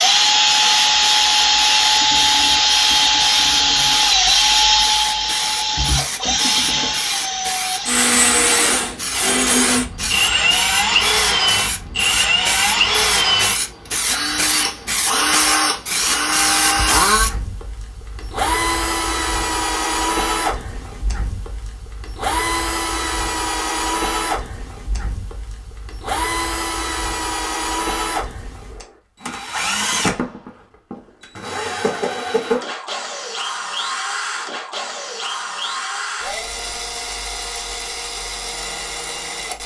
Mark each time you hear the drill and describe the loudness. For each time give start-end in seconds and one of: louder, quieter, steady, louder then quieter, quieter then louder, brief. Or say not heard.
0.0-39.6 quieter.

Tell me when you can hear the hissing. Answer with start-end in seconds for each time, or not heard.
0.0-17.4.